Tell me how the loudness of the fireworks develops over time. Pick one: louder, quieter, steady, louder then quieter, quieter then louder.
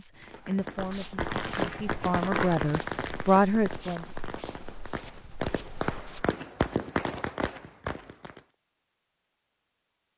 quieter then louder.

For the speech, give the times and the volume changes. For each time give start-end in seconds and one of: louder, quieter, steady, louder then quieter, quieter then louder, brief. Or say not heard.
0.0-4.0 quieter then louder.